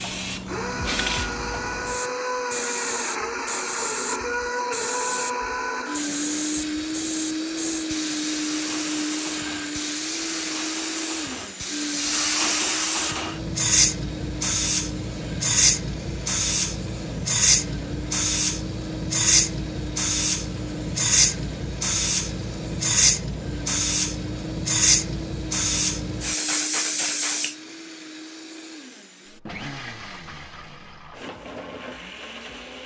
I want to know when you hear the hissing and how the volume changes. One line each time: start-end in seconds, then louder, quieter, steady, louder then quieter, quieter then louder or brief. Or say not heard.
0.0-27.6 louder.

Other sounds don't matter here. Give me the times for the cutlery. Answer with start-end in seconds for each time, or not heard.
not heard.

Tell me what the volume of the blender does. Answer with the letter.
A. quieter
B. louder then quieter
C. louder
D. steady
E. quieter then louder
A.